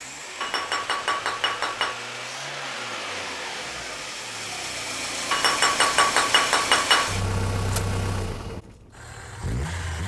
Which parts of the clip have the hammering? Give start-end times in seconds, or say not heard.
0.4-1.9, 5.3-7.2.